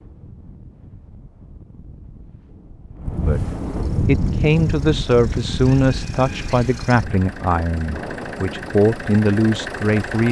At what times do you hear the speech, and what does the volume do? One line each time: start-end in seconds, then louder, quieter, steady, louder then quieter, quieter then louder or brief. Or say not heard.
3.2-10.2 quieter then louder.